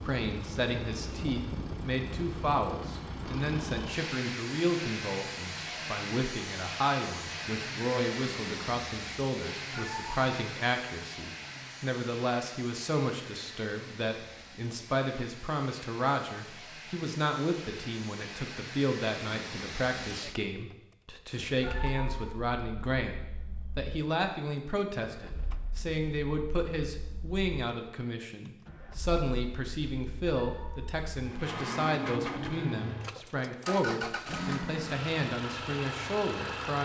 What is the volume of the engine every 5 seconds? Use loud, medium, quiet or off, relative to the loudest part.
loud, loud, medium, medium, medium, quiet, loud, loud.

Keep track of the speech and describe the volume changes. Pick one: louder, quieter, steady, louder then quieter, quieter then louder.
steady.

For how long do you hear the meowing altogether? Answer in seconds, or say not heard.
2 s.